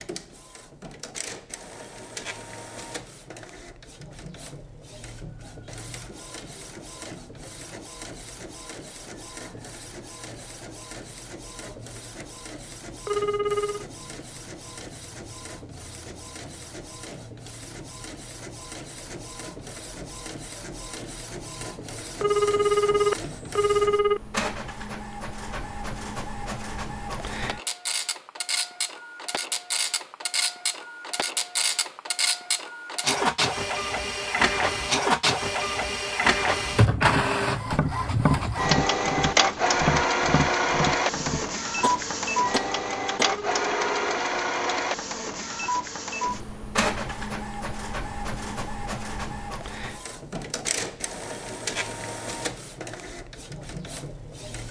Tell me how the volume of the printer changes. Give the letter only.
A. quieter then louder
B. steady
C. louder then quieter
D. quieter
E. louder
C.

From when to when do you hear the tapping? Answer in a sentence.
The tapping can be heard from 36.7 to 43.3 s.